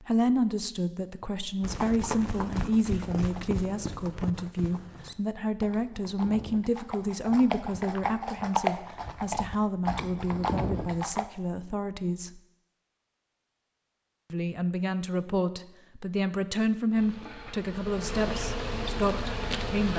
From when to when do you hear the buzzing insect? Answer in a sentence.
You can hear the buzzing insect from 16.9 to 19.9 s.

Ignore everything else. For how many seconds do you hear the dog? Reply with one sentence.
You can't hear the dog here.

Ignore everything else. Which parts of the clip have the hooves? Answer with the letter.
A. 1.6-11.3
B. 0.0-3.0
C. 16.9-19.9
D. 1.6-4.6
A.